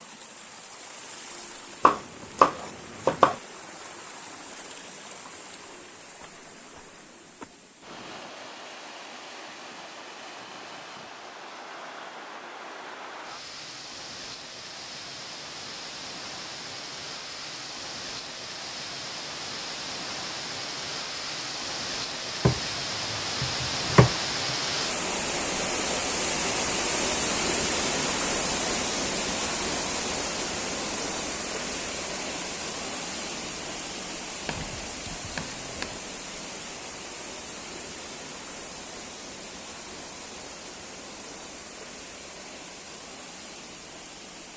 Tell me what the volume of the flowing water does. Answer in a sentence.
The volume of the flowing water goes up, then down.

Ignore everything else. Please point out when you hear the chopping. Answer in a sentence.
The chopping can be heard from 1.9 to 3.4 s, from 22.4 to 24.6 s and from 34.5 to 36.0 s.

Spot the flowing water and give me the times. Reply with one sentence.
The flowing water can be heard from 0.0 to 44.5 s.